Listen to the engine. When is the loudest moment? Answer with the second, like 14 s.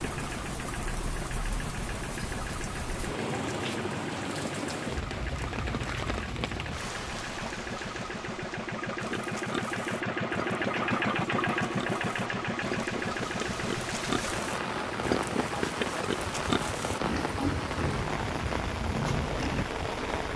11 s.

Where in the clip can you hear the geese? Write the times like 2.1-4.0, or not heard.
not heard.